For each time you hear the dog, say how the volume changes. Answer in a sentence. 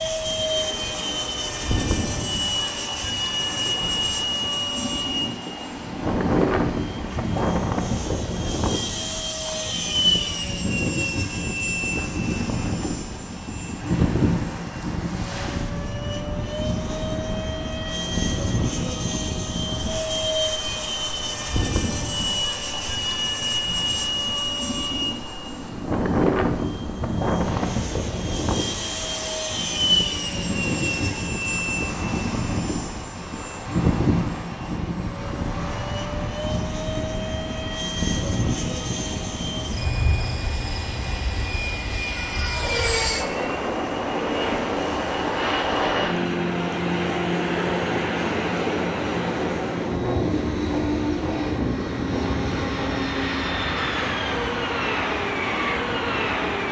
The dog can't be heard in this clip.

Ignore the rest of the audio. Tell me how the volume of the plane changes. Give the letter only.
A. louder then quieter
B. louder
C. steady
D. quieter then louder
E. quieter
C.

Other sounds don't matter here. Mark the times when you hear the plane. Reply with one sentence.
The plane can be heard from 0.0 to 56.6 s.